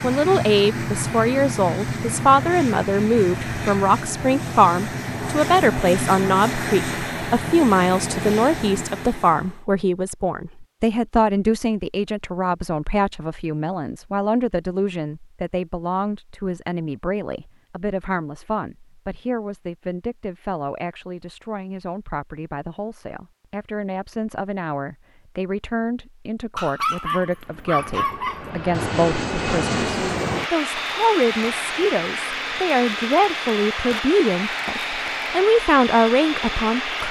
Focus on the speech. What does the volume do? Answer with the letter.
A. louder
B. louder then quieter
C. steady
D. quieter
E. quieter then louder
E.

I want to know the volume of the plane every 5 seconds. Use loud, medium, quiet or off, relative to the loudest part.
loud, loud, off, off, off, loud, loud, loud.